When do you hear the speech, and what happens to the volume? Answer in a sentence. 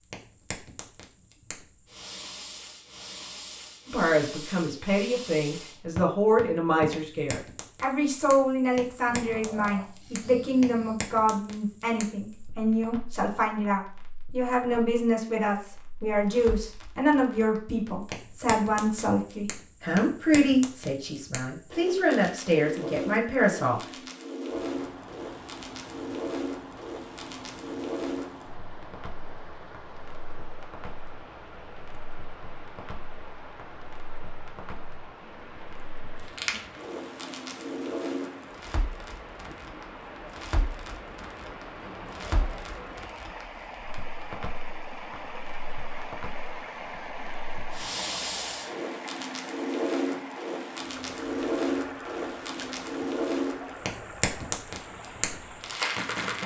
The speech can be heard from 3.9 to 23.8 s, at a steady volume.